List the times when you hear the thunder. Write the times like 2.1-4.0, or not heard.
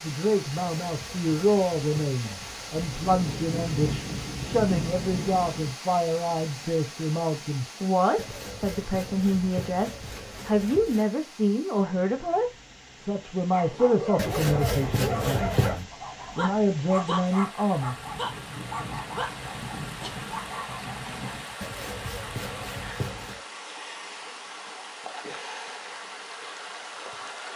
2.8-5.8, 17.8-21.6.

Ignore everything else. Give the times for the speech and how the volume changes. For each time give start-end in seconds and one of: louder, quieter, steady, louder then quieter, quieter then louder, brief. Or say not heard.
0.0-17.9 steady.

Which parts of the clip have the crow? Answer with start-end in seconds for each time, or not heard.
not heard.